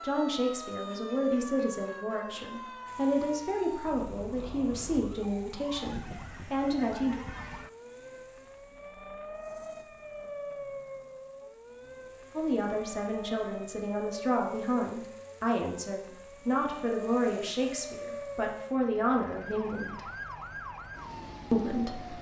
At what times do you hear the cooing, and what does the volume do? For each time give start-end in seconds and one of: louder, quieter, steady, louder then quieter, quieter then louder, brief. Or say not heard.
not heard.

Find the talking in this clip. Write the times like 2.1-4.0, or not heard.
0.0-7.2, 12.3-20.1, 21.5-22.1.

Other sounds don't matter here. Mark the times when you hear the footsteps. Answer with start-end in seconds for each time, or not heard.
not heard.